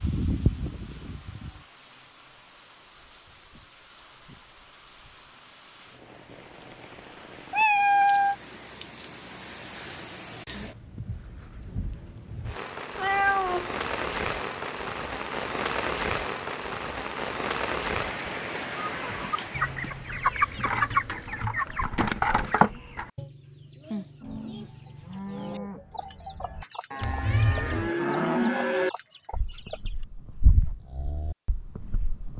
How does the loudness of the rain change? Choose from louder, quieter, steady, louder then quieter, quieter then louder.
louder.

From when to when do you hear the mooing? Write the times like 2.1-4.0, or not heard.
0.0-1.6, 24.2-32.3.